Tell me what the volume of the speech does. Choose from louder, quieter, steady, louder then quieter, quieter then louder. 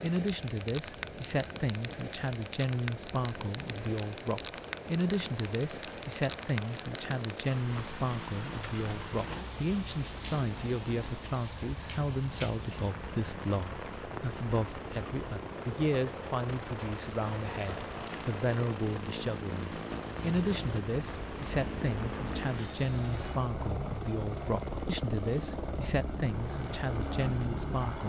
steady.